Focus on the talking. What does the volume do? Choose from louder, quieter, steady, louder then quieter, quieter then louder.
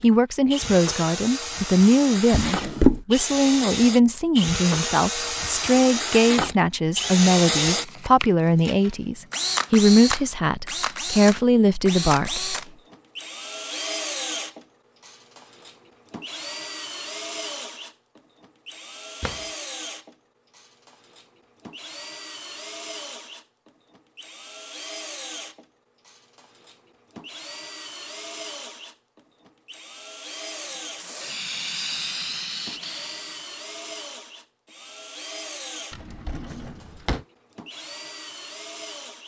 steady.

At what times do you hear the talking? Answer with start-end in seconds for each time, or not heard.
0.0-12.6.